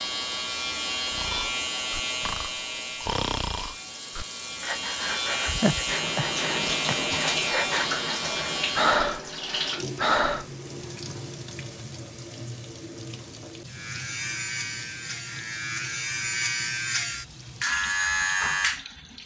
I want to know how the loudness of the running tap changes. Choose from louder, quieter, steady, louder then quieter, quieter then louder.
louder then quieter.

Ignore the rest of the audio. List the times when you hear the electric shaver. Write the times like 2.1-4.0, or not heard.
0.0-9.0, 13.7-19.1.